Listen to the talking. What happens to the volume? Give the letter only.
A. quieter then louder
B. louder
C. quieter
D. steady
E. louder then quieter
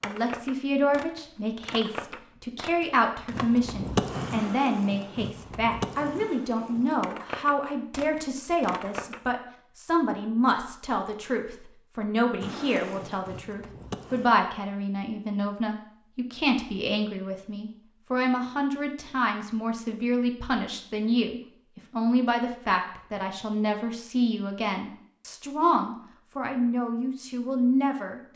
D.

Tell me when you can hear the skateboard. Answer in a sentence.
You can hear the skateboard from 0.0 to 9.2 s and from 12.4 to 14.3 s.